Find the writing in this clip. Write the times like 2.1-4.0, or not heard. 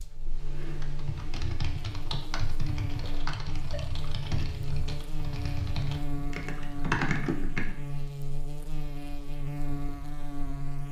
not heard.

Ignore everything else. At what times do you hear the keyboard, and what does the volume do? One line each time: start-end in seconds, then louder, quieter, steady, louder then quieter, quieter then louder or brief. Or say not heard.
0.2-7.8 louder.